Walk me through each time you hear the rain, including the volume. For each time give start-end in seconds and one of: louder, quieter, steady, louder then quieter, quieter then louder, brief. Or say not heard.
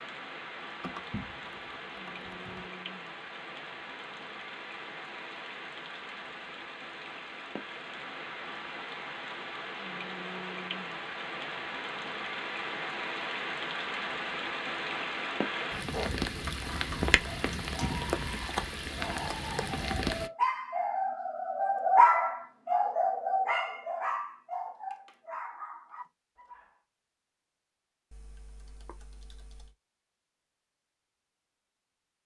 0.0-20.3 louder.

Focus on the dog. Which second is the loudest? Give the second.
22 s.